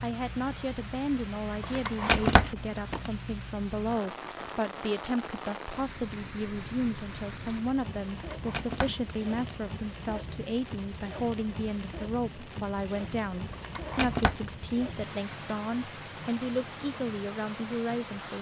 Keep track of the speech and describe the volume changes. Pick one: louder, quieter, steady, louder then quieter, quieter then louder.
steady.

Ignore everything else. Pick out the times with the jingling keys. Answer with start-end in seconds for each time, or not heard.
1.6-3.1, 8.2-9.8, 13.5-14.4.